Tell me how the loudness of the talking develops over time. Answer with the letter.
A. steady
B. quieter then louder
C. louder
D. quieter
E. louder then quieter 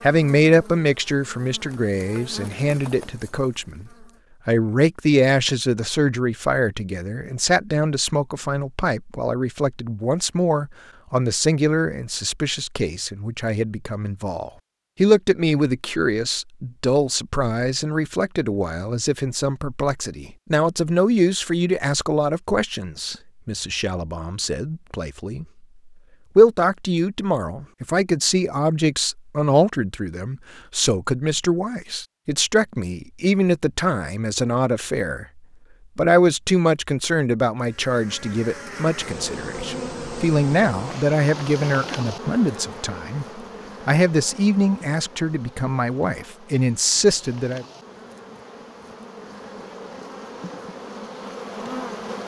A.